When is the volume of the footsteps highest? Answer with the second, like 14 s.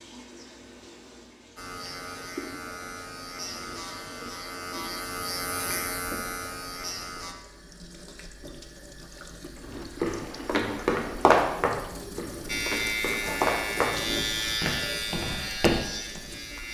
11 s.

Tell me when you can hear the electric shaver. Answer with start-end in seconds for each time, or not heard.
1.6-7.3, 12.4-16.6.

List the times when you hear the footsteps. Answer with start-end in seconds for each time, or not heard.
9.7-16.2.